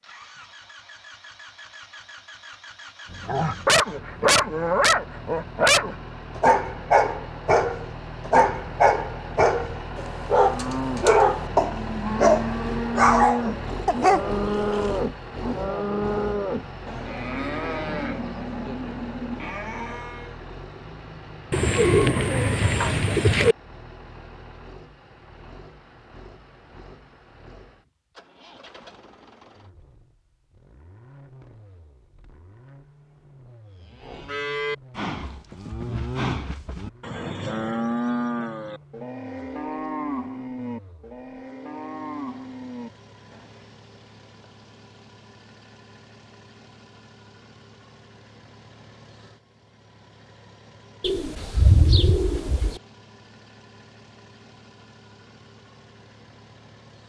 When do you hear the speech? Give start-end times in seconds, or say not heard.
not heard.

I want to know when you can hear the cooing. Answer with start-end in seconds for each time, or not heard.
21.5-23.6, 51.0-52.8.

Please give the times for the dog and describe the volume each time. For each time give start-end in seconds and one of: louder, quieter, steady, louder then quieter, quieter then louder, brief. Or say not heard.
3.1-15.0 steady.